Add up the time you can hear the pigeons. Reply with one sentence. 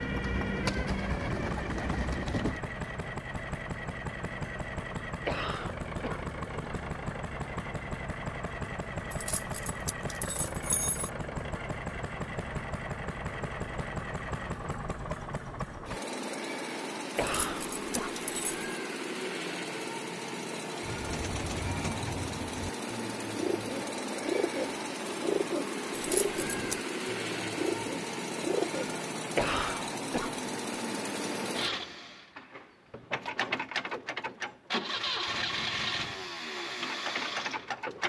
The pigeons can be heard for 11 seconds in total.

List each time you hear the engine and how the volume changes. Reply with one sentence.
The engine can be heard from 0.0 to 38.0 s, at a steady volume.